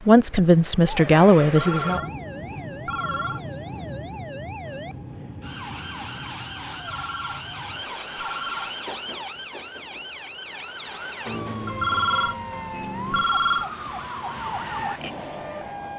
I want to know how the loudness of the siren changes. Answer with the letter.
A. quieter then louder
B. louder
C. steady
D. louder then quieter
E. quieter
B.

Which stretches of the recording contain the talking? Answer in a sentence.
The talking can be heard from 0.1 to 2.0 s.